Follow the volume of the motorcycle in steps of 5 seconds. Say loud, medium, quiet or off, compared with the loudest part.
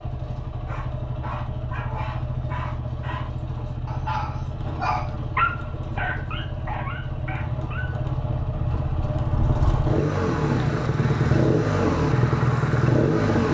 medium, medium, loud.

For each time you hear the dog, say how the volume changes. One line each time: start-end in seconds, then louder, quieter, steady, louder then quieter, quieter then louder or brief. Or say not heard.
0.7-8.1 louder then quieter.